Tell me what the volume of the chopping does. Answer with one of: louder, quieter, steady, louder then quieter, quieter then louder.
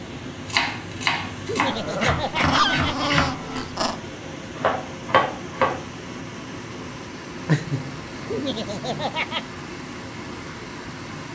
quieter then louder.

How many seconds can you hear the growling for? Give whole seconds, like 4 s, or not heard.
4 s.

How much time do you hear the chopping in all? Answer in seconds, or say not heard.
5 s.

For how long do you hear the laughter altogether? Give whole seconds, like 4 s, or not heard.
3 s.